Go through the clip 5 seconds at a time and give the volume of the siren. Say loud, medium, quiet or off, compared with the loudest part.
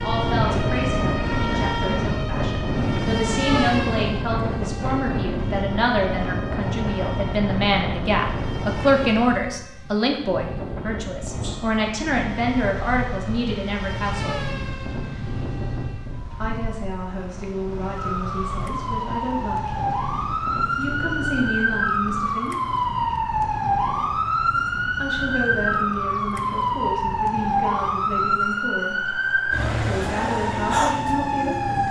medium, quiet, quiet, medium, loud, loud, loud.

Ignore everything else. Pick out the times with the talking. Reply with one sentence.
The talking can be heard from 0.0 to 14.4 s, from 16.4 to 19.8 s, from 20.8 to 22.6 s, from 25.0 to 28.9 s and from 29.9 to 31.8 s.